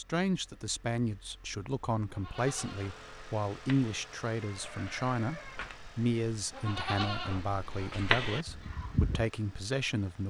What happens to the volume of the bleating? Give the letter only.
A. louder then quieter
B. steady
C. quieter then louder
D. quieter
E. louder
E.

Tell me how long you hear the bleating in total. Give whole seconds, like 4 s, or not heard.
7 s.